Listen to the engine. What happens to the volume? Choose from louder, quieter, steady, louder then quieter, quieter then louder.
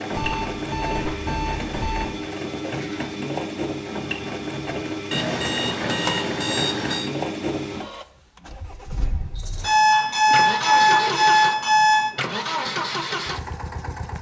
steady.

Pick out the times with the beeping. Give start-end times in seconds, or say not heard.
0.1-2.0, 5.1-7.1, 9.6-12.2.